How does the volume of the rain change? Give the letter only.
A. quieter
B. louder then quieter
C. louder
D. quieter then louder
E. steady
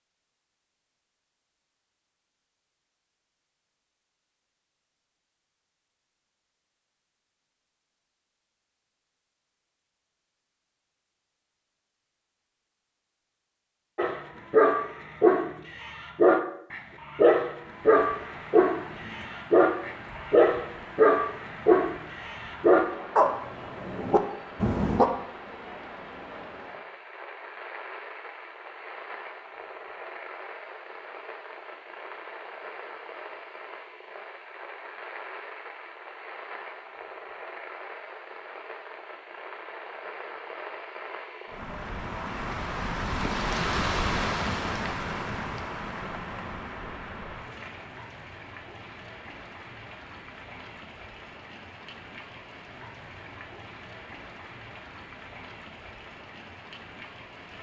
B.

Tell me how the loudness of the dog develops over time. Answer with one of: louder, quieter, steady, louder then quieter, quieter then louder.
steady.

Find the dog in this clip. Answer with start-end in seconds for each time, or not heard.
13.9-25.1.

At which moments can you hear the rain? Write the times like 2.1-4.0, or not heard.
17.4-57.5.